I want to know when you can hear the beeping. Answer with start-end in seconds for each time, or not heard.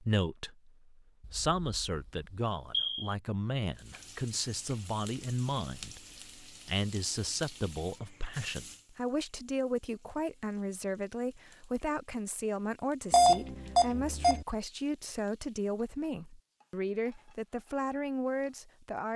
1.2-3.1, 13.1-14.4.